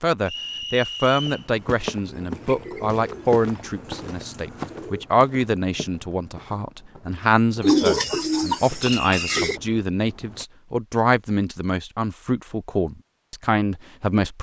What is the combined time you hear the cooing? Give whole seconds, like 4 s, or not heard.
5 s.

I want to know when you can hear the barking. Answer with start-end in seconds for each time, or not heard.
not heard.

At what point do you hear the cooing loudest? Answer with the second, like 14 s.
8 s.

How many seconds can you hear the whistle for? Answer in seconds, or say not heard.
2 s.